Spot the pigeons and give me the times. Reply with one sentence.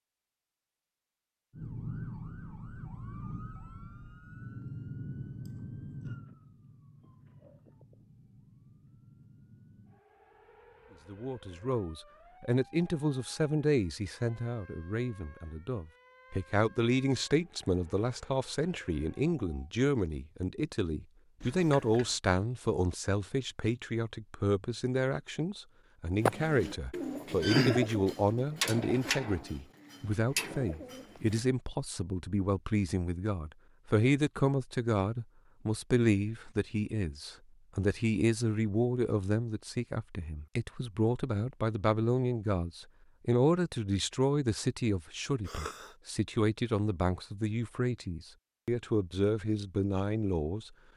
The pigeons can be heard from 26.2 to 31.4 s.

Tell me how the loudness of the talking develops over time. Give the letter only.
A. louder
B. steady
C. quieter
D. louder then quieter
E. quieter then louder
B.